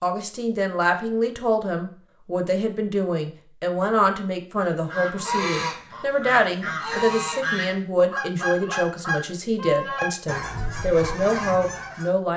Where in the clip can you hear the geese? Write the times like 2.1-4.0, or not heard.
4.7-12.1.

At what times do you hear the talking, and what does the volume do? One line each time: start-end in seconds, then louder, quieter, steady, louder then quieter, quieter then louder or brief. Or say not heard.
0.0-12.3 steady.